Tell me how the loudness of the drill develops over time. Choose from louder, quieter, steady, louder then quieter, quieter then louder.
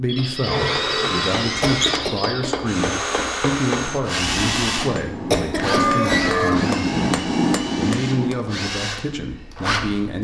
quieter.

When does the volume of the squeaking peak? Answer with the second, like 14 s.
6 s.